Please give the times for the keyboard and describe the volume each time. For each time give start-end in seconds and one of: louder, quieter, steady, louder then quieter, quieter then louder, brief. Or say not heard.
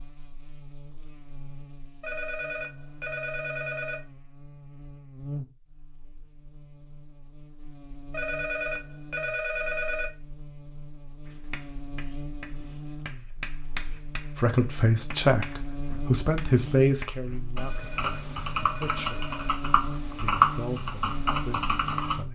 17.2-22.2 louder then quieter.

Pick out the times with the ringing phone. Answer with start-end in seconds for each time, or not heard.
2.0-4.0, 8.1-10.1, 17.6-19.6.